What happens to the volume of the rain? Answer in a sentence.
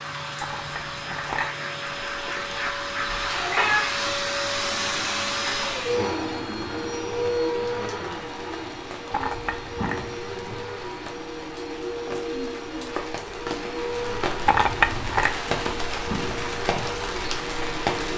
The volume of the rain goes up.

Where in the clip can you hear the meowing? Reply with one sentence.
The meowing can be heard from 3.0 to 3.9 s.